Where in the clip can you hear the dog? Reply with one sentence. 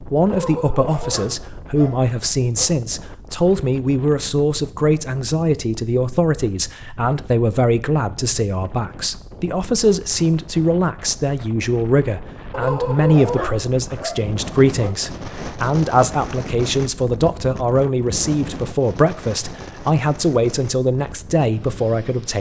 The dog can be heard from 0.2 to 2.8 s and from 12.5 to 14.9 s.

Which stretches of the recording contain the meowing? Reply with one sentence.
You can't hear the meowing here.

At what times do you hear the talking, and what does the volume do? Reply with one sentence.
You can hear the talking from 0.0 to 22.3 s, at a steady volume.